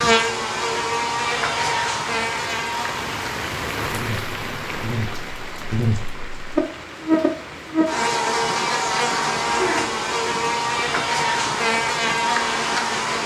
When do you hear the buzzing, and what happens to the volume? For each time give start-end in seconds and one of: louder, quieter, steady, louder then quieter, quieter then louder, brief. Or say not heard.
0.0-13.2 quieter then louder.